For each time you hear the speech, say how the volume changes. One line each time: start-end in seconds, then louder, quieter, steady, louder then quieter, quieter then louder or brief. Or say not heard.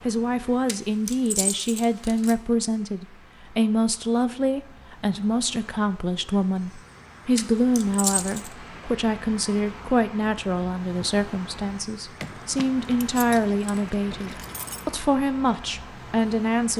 0.0-16.7 steady.